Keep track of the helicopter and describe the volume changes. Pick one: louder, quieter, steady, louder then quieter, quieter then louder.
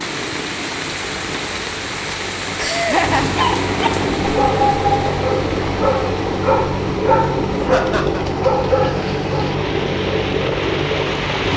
louder.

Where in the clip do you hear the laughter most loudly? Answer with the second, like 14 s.
3 s.